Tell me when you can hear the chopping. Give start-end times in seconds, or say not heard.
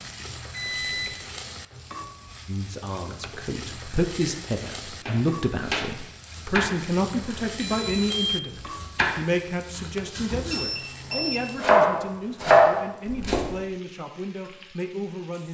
5.0-13.5.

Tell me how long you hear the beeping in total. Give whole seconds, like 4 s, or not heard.
3 s.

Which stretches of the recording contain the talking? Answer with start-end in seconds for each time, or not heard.
2.5-15.4.